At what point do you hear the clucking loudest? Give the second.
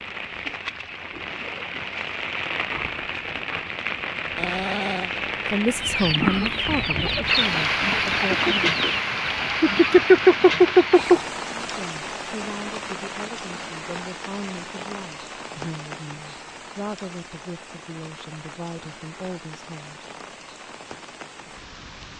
10 s.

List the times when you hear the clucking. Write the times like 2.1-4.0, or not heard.
5.8-11.2.